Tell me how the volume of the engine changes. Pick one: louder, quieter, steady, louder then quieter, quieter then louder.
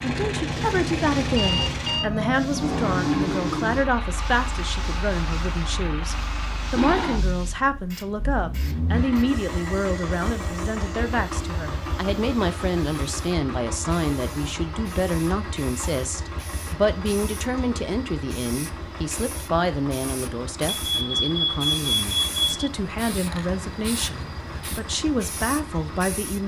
quieter.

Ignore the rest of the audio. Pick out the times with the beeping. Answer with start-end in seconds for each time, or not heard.
1.3-2.0, 20.7-22.7.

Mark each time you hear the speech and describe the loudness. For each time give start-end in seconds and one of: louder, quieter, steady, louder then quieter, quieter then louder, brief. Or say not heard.
0.0-26.4 steady.